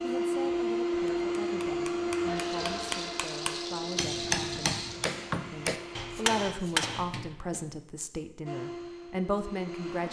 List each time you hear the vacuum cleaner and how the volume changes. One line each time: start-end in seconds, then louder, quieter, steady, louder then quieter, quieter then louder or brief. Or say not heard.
0.0-6.5 quieter
8.4-10.0 brief.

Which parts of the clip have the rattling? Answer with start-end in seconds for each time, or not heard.
2.4-5.0.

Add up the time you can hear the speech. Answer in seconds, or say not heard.
9 s.